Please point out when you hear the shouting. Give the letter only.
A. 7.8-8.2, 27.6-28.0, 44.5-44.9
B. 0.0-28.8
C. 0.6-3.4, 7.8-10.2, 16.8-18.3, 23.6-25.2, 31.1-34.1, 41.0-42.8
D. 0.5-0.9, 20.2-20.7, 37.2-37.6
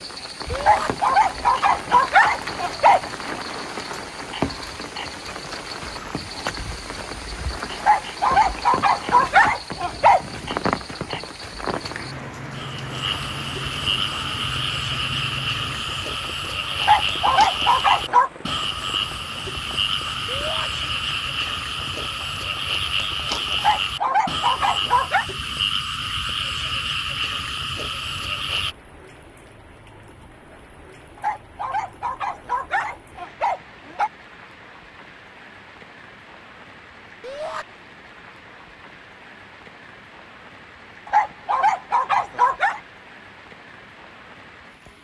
D.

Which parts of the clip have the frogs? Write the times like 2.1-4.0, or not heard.
0.0-28.8.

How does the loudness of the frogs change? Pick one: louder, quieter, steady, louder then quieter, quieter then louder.
louder.